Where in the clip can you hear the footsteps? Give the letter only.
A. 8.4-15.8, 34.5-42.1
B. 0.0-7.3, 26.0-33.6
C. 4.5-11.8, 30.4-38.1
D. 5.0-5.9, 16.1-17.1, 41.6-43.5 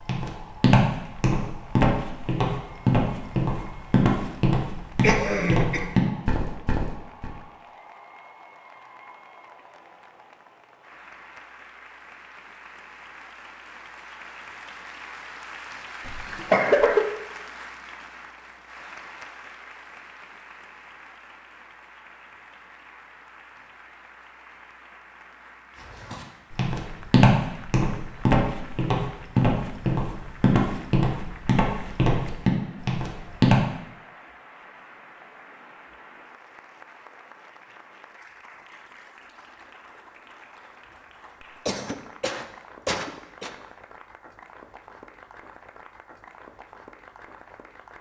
B.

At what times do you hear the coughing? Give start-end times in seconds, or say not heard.
5.0-5.9, 16.1-17.1, 41.6-43.5.